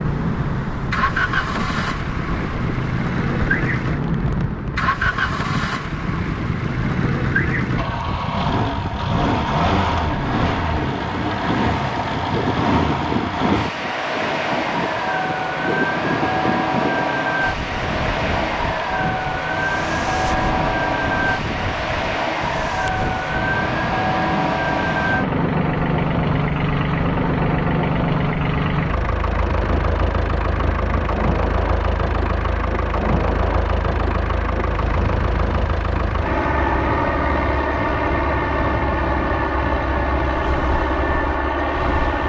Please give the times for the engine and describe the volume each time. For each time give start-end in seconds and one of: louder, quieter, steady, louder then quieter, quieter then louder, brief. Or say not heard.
0.0-42.2 steady.